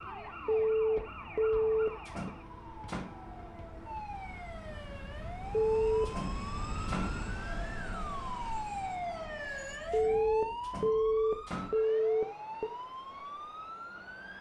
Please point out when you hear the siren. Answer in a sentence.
The siren can be heard from 0.0 to 14.3 s.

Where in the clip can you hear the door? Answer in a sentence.
You can hear the door from 2.0 to 3.1 s, from 6.0 to 7.2 s and from 10.6 to 11.8 s.